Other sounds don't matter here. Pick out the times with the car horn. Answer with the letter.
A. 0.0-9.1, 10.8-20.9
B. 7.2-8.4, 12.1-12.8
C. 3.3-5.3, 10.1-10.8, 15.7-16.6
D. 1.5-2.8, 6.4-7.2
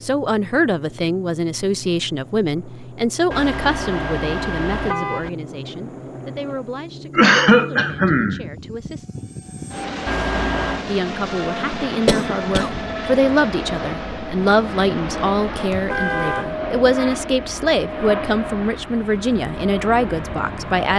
C.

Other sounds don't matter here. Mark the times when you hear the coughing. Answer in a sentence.
You can hear the coughing from 7.2 to 8.4 s and from 12.1 to 12.8 s.